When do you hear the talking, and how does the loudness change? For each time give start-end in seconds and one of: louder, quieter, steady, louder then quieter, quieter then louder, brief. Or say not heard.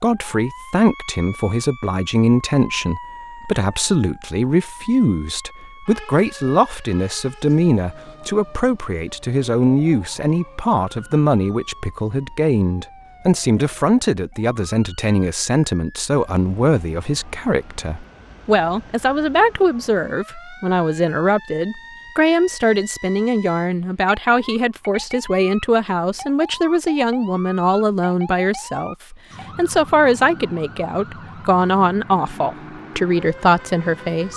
0.0-34.3 steady.